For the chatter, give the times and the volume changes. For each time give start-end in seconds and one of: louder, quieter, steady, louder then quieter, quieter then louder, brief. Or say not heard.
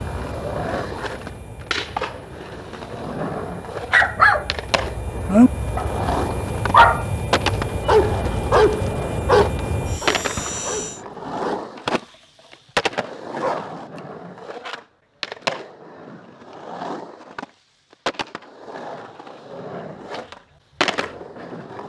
not heard.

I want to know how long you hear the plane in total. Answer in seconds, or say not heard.
11 s.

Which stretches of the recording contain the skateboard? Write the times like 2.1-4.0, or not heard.
0.0-21.8.